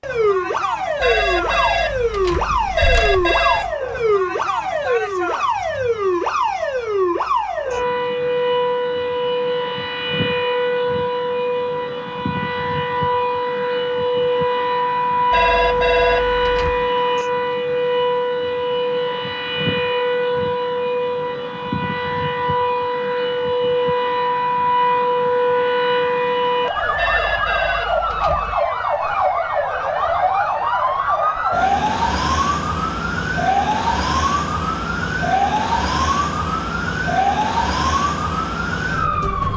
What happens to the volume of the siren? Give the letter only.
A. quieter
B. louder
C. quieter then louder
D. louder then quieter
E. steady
E.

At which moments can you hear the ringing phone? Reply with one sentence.
The ringing phone can be heard from 1.0 to 3.7 s, from 15.3 to 16.9 s and from 26.9 to 28.6 s.